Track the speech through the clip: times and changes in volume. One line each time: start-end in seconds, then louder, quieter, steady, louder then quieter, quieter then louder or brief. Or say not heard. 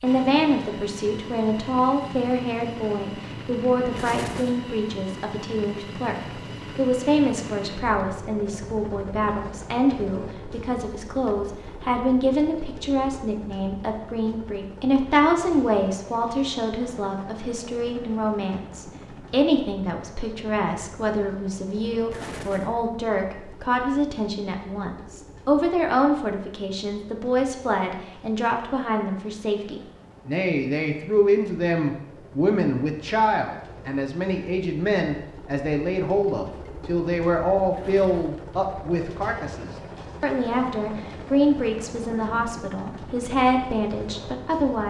0.0-44.8 steady.